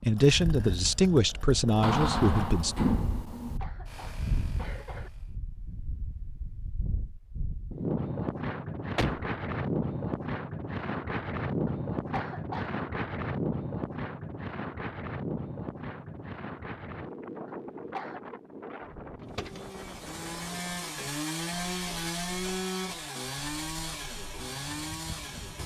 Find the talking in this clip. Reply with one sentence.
The talking can be heard from 0.0 to 2.8 s.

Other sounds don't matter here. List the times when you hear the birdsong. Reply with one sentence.
The birdsong can't be heard in this clip.